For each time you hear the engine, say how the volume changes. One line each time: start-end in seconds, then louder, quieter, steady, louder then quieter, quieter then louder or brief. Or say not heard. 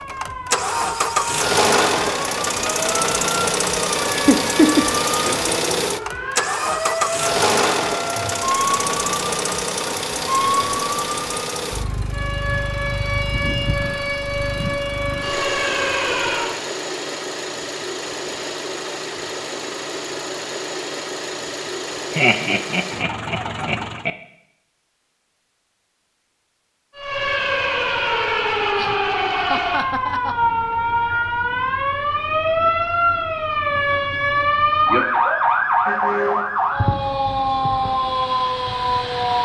0.0-24.1 quieter.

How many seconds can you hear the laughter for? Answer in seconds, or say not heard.
4 s.